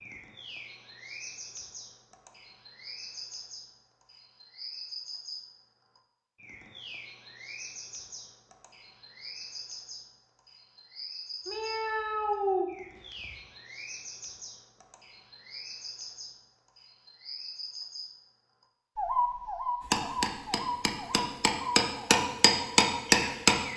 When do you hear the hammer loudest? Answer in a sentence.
The loudest moment of the hammer is at 23 seconds.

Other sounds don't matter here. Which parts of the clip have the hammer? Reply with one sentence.
You can hear the hammer from 19.9 to 23.6 s.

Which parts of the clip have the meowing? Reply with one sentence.
The meowing can be heard from 11.4 to 13.3 s.